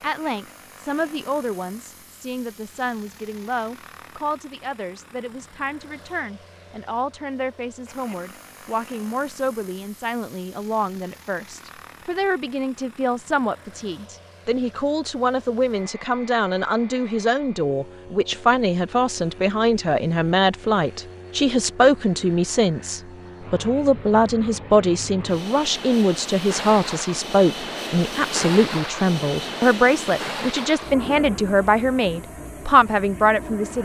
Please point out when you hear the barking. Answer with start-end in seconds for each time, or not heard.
not heard.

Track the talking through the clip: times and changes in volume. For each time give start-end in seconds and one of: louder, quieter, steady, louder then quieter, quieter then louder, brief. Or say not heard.
0.0-33.8 louder.